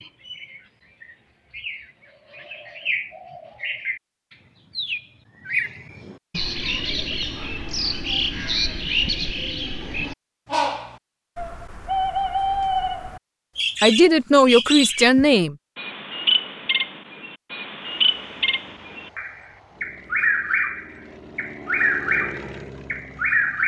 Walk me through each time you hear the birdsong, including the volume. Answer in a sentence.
The birdsong can be heard from 0.0 to 23.6 s, getting louder.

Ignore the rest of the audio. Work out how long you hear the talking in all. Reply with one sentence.
You can hear the talking for 2 seconds altogether.